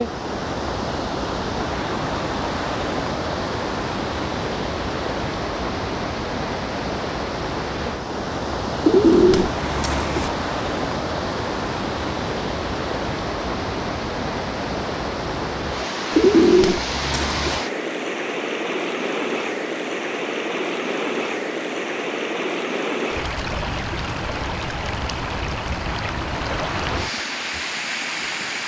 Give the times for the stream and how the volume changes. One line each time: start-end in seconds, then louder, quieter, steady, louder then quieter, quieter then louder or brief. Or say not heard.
0.0-28.6 steady.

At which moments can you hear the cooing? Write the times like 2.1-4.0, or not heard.
8.8-10.3, 16.1-17.6.